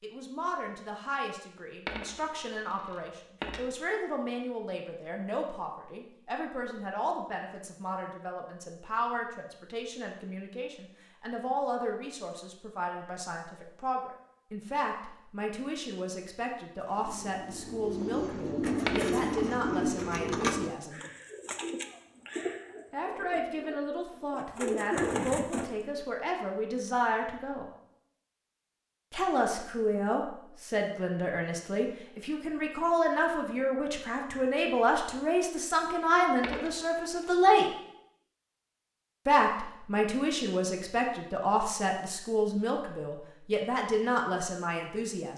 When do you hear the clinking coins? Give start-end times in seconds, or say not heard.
1.9-3.6, 18.9-19.3, 36.4-37.3.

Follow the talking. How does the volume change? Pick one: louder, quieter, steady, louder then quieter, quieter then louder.
louder.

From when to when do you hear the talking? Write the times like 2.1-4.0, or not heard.
0.0-21.0, 22.9-27.6, 29.1-37.7, 39.2-45.3.